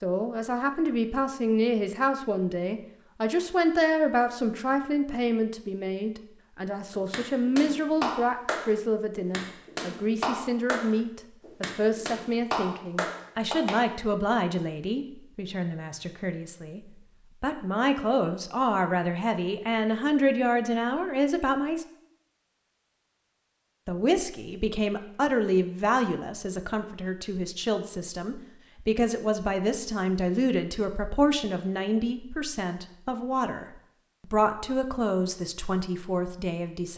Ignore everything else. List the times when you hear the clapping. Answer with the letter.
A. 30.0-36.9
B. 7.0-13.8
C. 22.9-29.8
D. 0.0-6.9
B.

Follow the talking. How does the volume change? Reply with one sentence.
The loudness of the talking stays about the same.